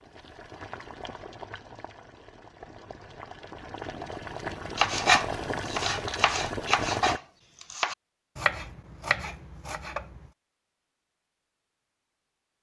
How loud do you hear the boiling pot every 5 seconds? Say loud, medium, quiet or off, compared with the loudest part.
medium, loud, off.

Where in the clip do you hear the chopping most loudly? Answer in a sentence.
The loudest moment of the chopping is at 5 seconds.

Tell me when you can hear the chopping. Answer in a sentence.
The chopping can be heard from 4.8 to 10.3 s.